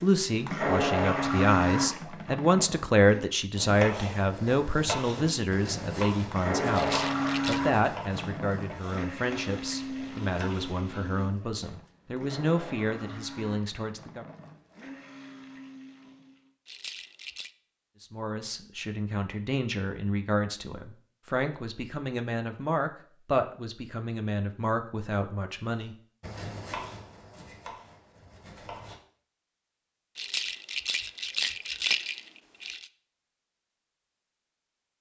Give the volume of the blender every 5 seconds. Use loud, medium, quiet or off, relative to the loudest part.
loud, loud, quiet, quiet, off, off, off.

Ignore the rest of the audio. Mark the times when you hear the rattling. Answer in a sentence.
The rattling can be heard from 6.7 to 7.7 s, from 16.6 to 17.5 s and from 30.1 to 32.9 s.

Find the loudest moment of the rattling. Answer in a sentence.
The volume of the rattling peaks at 32 seconds.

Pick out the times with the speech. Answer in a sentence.
The speech can be heard from 0.0 to 14.2 s and from 18.0 to 25.9 s.